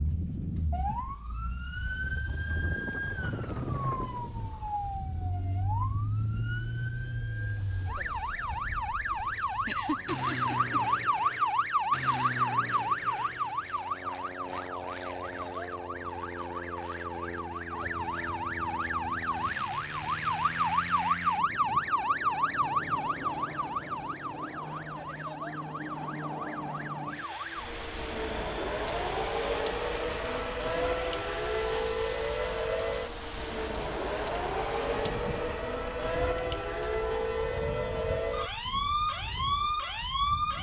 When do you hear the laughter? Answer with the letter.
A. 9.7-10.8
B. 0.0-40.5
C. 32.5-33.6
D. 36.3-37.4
A.